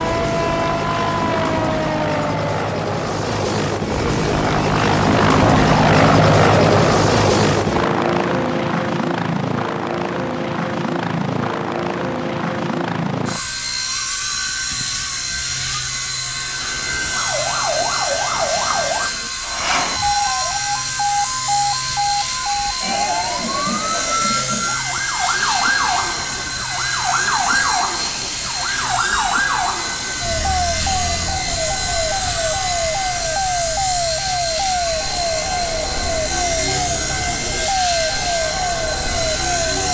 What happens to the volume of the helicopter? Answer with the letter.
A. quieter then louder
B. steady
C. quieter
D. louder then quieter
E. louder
C.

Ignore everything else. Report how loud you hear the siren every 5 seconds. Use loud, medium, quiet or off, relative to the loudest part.
loud, off, off, loud, loud, loud, loud, loud.